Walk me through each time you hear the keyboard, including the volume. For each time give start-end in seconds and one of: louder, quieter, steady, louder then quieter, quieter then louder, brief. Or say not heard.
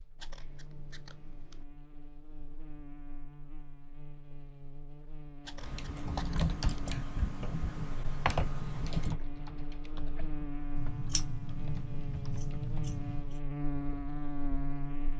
5.6-13.0 quieter.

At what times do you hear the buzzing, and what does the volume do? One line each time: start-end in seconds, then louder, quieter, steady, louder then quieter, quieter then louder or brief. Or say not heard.
0.0-15.1 louder.